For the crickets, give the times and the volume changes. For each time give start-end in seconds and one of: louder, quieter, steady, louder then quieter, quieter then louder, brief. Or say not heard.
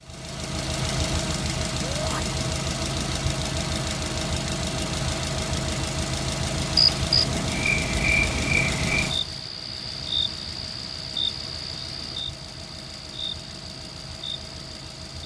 6.7-15.2 quieter.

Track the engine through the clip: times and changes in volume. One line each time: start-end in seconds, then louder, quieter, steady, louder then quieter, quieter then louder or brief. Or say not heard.
0.0-15.2 quieter.